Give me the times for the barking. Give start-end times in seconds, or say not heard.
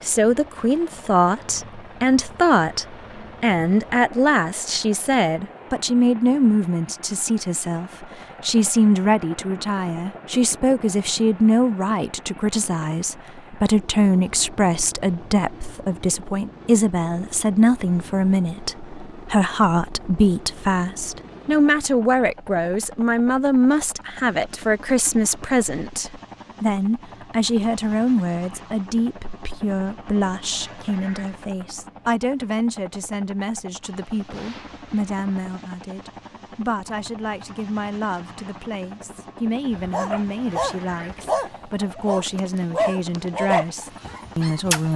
39.7-44.9.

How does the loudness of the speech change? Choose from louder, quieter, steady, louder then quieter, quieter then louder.
quieter.